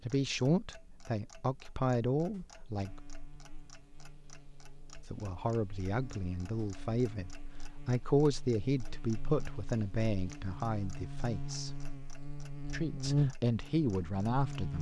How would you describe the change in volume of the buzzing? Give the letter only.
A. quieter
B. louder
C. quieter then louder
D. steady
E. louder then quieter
B.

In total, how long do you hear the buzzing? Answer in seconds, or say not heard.
12 s.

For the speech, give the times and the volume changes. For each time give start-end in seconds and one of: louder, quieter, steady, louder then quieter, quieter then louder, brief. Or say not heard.
0.0-3.0 brief
5.1-11.8 louder then quieter
12.7-14.7 brief.